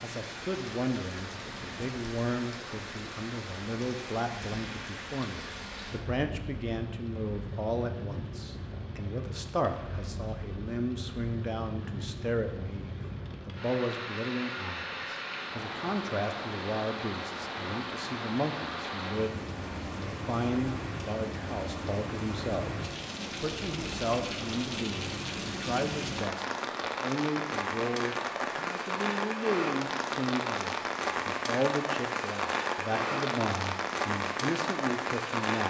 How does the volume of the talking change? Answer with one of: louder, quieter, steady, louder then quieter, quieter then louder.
steady.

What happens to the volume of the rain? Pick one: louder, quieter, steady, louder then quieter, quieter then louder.
louder.